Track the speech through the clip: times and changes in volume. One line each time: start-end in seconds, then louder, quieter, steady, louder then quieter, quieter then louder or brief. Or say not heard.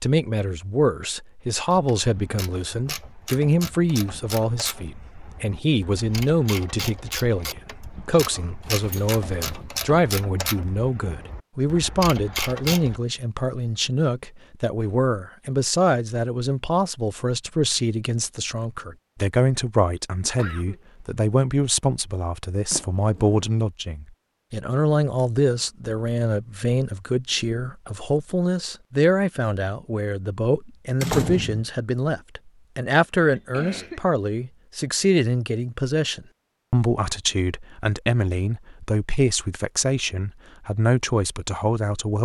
0.0-42.1 steady.